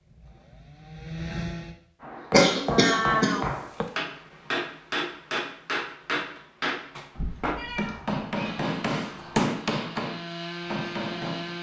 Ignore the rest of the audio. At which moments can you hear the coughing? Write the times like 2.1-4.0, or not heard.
2.3-3.5.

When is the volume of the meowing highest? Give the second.
3 s.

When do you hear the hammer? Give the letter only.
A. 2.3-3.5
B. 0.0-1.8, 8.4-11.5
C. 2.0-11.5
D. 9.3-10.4
C.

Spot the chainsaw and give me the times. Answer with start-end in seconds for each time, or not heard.
0.0-1.8, 8.4-11.5.